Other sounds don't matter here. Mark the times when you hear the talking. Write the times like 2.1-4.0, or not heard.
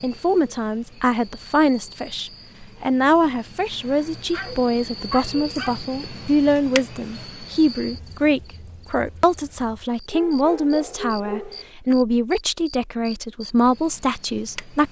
0.0-14.8.